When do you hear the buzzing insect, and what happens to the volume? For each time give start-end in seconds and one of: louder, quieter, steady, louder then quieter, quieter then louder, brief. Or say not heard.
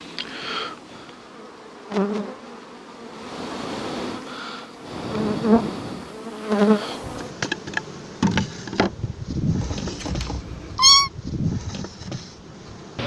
0.0-13.0 louder then quieter.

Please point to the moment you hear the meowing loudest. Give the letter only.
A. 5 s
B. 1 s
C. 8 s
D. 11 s
D.